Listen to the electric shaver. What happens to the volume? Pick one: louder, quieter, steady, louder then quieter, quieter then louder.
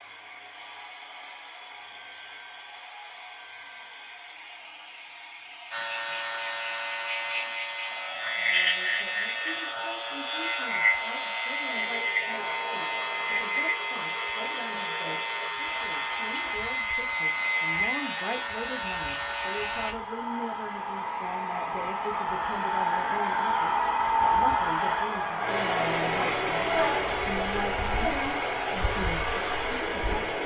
steady.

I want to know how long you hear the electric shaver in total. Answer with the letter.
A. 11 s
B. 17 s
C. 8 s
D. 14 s
D.